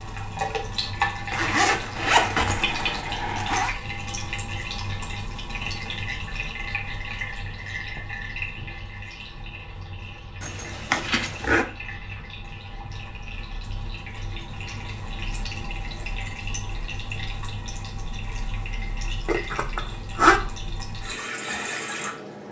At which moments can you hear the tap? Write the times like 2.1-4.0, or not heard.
0.0-22.4.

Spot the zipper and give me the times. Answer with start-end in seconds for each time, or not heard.
1.3-3.8, 10.4-11.7, 19.2-20.4.